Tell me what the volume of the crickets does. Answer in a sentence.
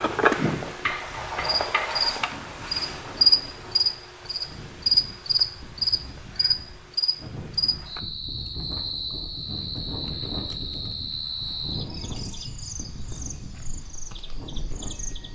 The volume of the crickets goes down.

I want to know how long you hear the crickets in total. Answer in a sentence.
The crickets can be heard for 15 seconds in total.